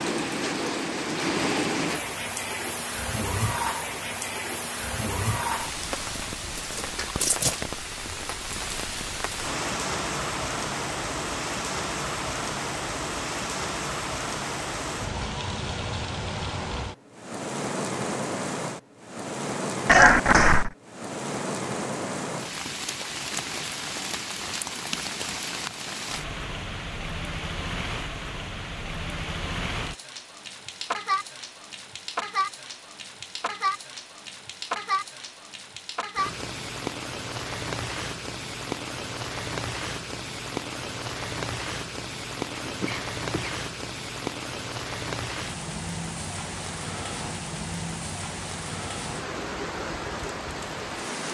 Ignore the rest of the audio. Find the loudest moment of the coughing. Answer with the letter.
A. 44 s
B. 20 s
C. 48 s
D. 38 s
B.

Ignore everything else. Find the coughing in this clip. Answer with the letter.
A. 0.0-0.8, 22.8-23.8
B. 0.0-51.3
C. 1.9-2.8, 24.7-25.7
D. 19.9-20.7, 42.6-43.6
D.